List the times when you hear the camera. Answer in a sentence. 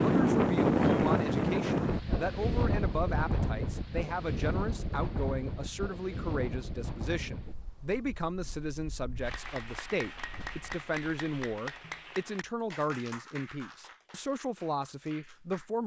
You can't hear the camera here.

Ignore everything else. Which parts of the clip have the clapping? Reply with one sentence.
The clapping can be heard from 9.2 to 15.7 s.